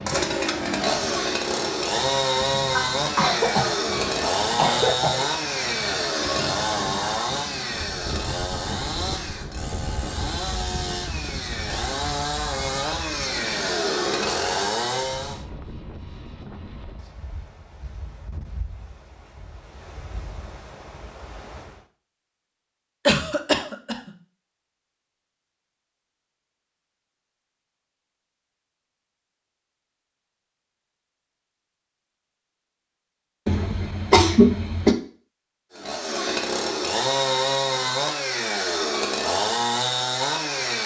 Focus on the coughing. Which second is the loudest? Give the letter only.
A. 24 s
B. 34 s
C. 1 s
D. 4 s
B.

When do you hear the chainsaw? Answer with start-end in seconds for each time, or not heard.
0.0-15.4, 35.7-40.8.